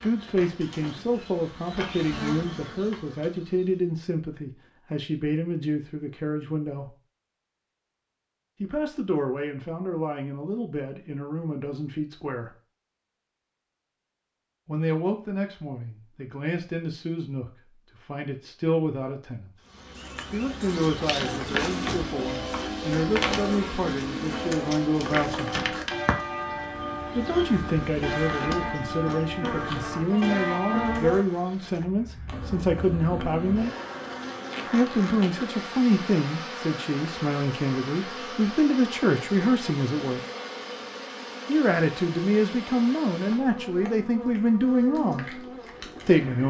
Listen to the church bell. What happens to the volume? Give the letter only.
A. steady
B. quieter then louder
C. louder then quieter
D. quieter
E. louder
A.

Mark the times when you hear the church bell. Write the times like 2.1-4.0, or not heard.
21.2-31.1.